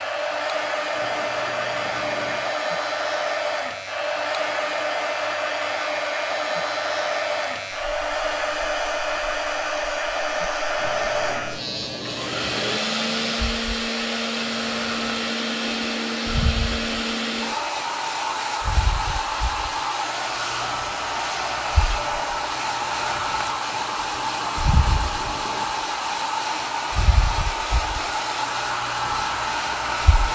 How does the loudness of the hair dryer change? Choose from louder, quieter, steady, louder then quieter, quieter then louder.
steady.